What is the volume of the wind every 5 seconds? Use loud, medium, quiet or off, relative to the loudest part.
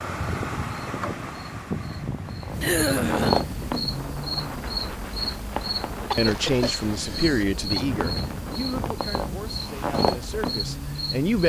loud, loud, off.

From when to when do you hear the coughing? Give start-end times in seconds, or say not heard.
2.6-3.5, 6.1-7.8.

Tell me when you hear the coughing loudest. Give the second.
3 s.